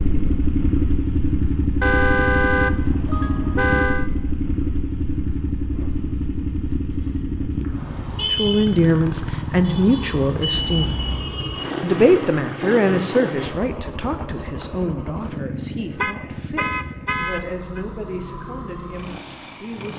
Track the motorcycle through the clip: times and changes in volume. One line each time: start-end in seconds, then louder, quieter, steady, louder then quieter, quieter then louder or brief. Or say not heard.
0.0-19.9 quieter.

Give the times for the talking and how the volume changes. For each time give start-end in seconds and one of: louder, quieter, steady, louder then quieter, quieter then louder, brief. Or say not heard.
8.3-10.9 brief
11.8-19.9 quieter.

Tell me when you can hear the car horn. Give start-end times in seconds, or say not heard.
1.8-4.1, 10.5-11.3, 16.0-17.8.